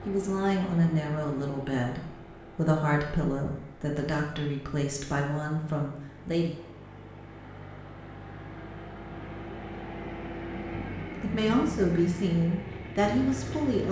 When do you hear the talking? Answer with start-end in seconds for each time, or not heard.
0.1-6.6, 10.4-13.8.